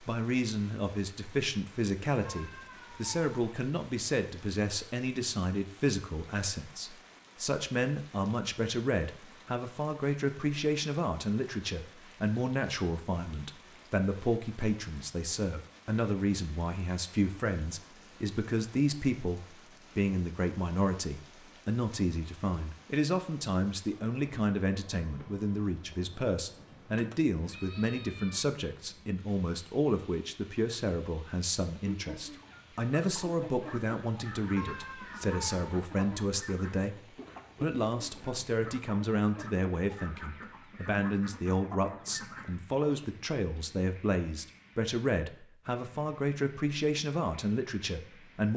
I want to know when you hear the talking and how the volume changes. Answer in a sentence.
You can hear the talking from 0.0 to 48.5 s, at a steady volume.